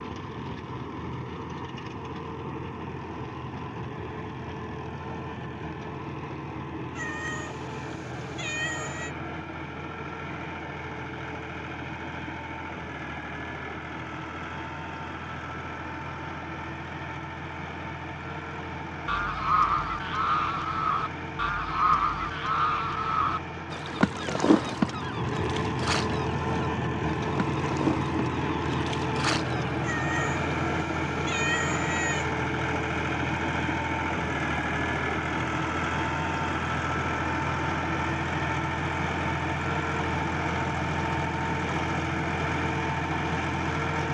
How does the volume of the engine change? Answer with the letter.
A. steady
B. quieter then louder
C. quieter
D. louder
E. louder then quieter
D.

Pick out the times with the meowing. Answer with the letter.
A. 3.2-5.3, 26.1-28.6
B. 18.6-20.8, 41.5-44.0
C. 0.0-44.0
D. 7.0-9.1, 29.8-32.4
D.